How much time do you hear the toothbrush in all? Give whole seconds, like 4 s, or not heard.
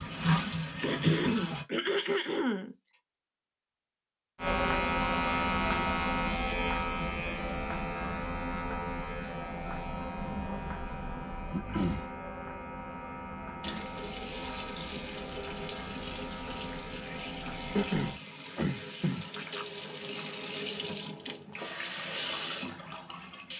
not heard.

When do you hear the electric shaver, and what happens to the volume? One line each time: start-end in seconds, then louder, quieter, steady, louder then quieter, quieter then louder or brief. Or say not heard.
4.3-18.2 quieter.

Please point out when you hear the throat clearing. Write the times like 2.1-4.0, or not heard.
0.8-2.8, 11.5-12.1, 17.8-19.3.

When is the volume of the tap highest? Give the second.
1 s.